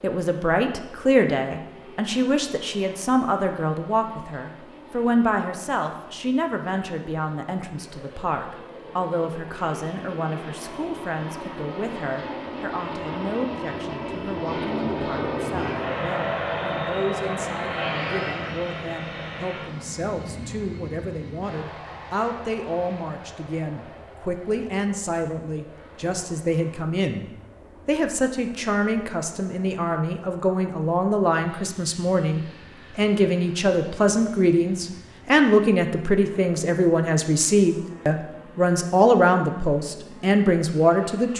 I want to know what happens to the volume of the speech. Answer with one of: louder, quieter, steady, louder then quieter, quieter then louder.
quieter then louder.